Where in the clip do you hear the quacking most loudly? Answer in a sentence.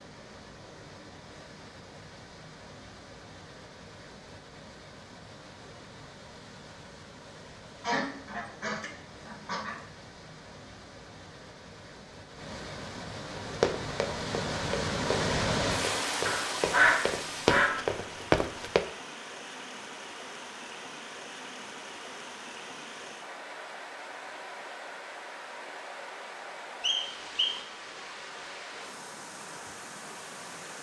The loudest moment of the quacking is at 17 seconds.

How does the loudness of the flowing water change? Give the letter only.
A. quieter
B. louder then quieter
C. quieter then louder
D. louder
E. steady
B.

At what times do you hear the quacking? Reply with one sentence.
The quacking can be heard from 7.8 to 9.8 s and from 16.2 to 17.8 s.